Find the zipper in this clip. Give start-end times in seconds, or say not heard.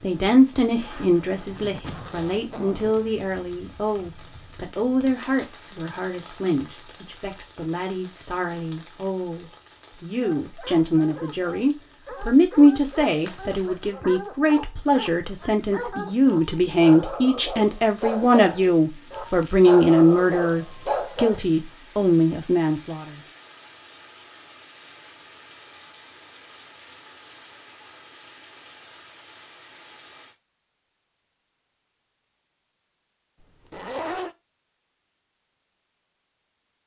1.4-3.0, 13.1-13.8, 33.4-34.4.